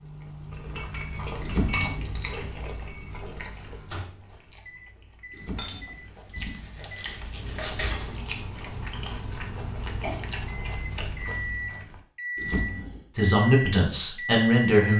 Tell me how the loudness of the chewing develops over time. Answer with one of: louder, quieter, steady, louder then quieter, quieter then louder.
quieter then louder.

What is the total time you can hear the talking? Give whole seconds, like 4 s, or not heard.
2 s.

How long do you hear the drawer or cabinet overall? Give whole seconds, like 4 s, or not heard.
3 s.